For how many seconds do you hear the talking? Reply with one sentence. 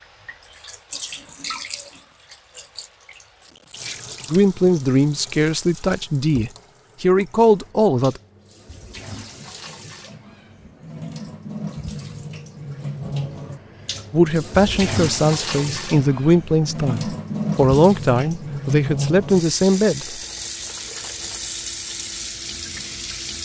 You can hear the talking for 10 seconds altogether.